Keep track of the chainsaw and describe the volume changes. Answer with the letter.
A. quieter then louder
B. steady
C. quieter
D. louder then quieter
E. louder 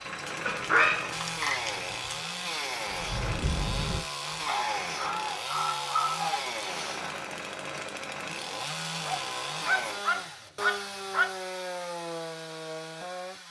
B.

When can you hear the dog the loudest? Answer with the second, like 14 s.
1 s.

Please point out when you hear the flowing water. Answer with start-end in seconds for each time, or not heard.
not heard.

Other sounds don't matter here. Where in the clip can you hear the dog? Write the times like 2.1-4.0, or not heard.
0.5-2.1, 5.0-6.5, 9.1-11.3.